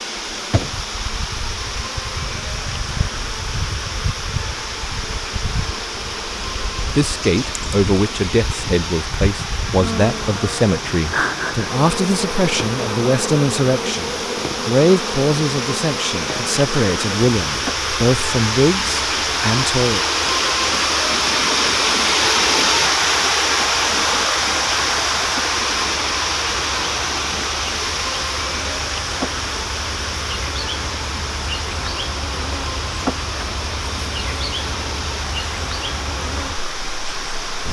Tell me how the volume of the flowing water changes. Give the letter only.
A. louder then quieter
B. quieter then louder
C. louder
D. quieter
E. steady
A.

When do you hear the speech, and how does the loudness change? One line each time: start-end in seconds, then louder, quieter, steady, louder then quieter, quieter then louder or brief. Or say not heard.
7.0-20.0 steady.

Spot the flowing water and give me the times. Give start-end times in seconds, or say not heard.
0.0-37.6.